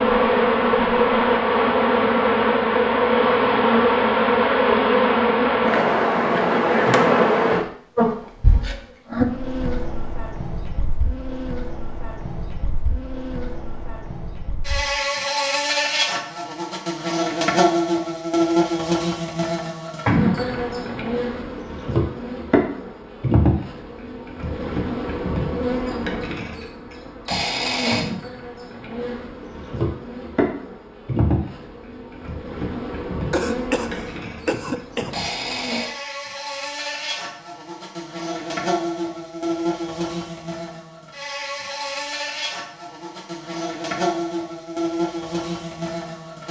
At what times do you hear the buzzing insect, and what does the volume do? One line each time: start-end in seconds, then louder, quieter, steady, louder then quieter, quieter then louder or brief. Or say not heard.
0.0-46.4 quieter.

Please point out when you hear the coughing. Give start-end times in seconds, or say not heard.
33.3-35.3.